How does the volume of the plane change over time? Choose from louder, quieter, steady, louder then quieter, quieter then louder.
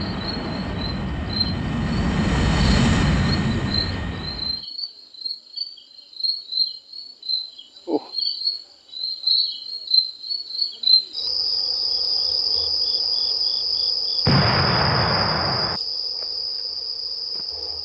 louder then quieter.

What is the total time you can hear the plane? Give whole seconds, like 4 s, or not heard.
5 s.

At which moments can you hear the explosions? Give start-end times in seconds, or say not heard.
14.2-15.8.